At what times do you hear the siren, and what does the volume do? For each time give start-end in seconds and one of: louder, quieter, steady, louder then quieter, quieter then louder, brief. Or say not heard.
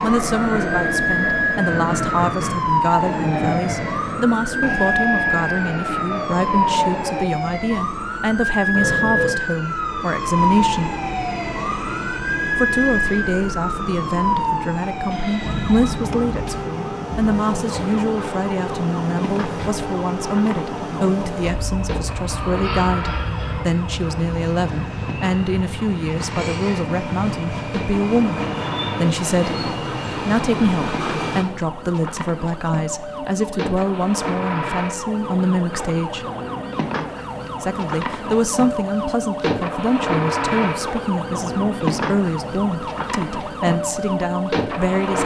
0.0-45.2 quieter then louder.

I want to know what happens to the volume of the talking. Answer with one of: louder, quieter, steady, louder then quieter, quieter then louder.
steady.